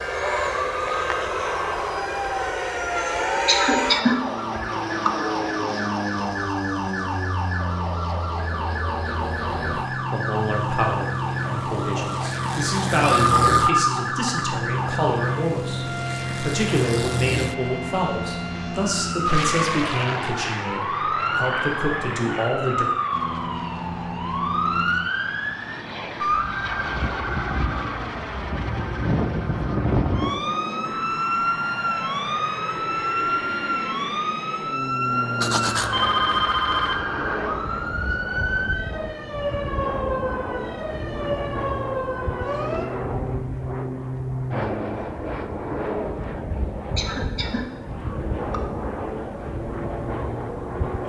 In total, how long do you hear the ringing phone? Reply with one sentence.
You can hear the ringing phone for 3 seconds altogether.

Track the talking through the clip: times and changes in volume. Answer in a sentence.
You can hear the talking from 9.9 to 22.9 s, at a steady volume.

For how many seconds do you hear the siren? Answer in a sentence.
The siren can be heard for 43 seconds in total.